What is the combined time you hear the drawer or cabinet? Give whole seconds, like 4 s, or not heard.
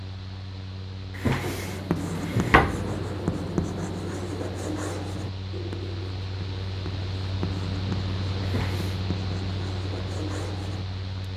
2 s.